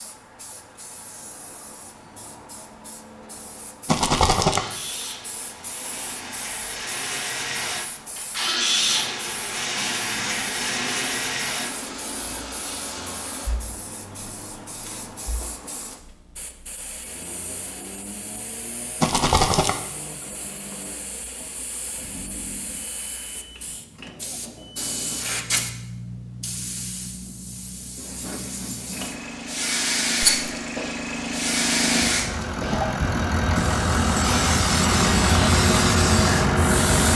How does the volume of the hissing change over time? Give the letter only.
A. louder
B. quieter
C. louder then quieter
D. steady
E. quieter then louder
A.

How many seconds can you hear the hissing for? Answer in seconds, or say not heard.
37 s.